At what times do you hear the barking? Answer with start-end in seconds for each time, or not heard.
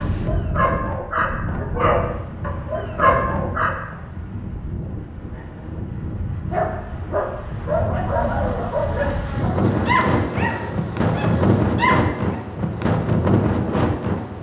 0.0-4.0, 6.5-12.4.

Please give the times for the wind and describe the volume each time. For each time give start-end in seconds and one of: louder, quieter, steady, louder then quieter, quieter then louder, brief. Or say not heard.
0.0-14.3 louder.